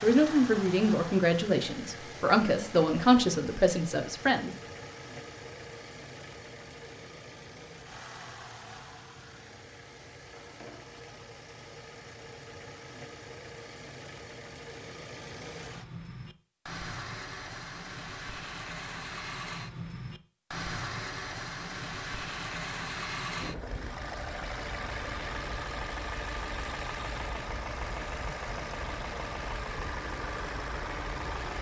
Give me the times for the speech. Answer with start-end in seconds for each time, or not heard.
0.0-4.5.